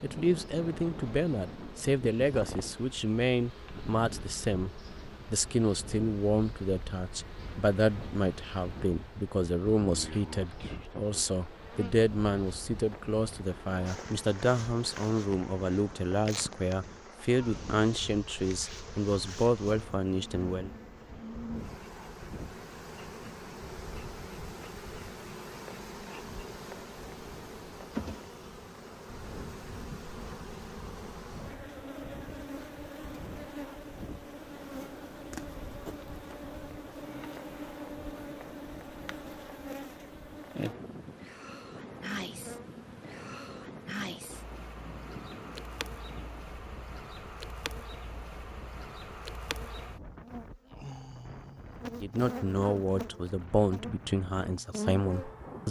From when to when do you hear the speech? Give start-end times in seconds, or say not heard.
0.0-20.7, 52.0-55.6.